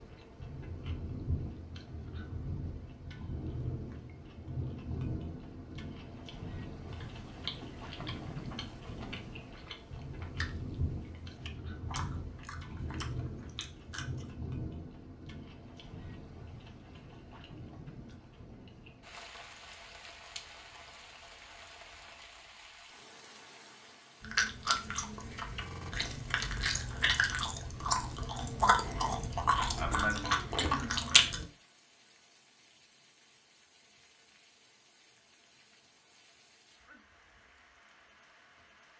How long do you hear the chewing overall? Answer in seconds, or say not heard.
15 s.